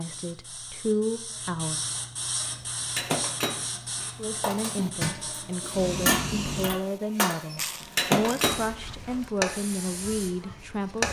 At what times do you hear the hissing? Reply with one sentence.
The hissing can be heard from 0.0 to 6.7 s and from 8.4 to 11.0 s.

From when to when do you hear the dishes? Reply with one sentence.
The dishes can be heard from 2.5 to 8.7 s.